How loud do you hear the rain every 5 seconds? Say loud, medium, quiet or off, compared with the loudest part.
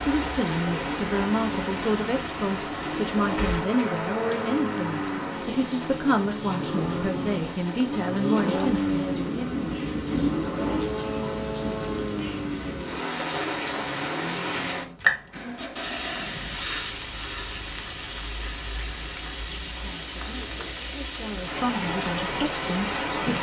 loud, medium, loud, loud, loud.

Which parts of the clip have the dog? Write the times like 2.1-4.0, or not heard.
not heard.